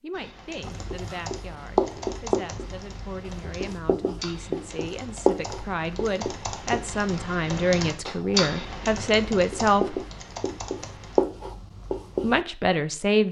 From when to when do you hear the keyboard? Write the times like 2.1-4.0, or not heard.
0.1-11.2.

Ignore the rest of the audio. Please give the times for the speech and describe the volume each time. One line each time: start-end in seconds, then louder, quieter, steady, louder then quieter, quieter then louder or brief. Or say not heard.
0.0-10.0 louder
12.2-13.2 brief.